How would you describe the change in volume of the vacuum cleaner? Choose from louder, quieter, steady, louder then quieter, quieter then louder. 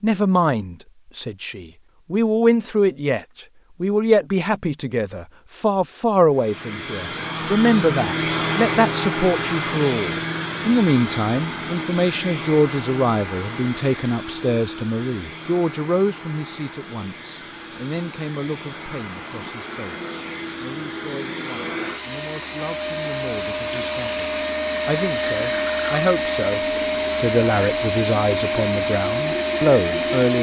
quieter then louder.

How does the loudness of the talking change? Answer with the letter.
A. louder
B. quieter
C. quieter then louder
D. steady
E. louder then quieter
C.